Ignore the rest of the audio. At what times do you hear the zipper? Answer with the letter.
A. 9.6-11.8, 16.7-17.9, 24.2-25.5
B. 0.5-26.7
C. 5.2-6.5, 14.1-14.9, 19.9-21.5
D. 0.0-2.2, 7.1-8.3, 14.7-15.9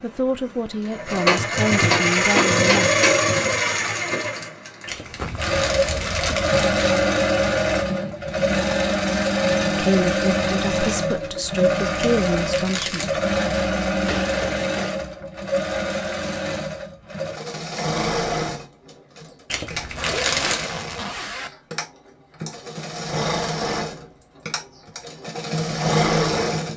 C.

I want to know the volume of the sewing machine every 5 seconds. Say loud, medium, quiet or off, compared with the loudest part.
loud, loud, loud, medium, medium, loud.